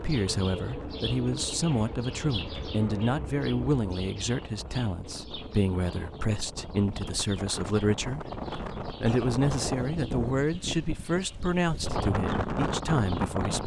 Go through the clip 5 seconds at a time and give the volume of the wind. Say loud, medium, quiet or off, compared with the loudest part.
quiet, medium, loud.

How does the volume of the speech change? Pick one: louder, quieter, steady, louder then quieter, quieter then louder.
steady.